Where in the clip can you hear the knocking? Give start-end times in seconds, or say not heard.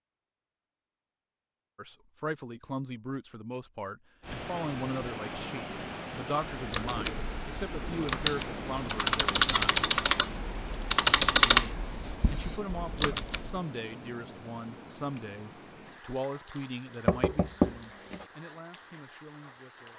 17.1-18.2.